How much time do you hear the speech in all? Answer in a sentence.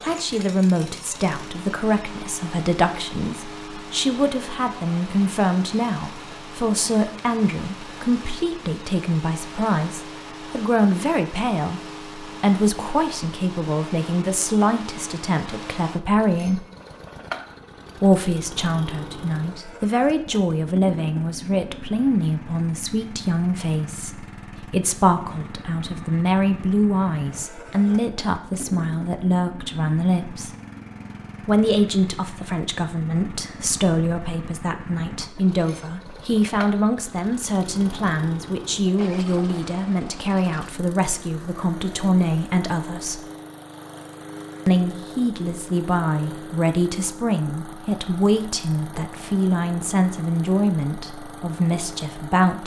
The speech can be heard for 49 seconds in total.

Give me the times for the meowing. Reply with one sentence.
You can't hear the meowing here.